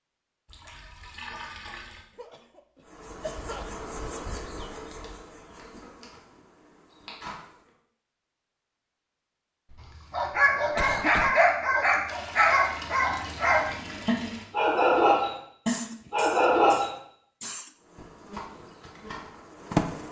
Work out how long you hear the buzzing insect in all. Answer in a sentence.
The buzzing insect can be heard for 7 seconds in total.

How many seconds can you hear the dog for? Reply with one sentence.
The dog can be heard for 7 seconds in total.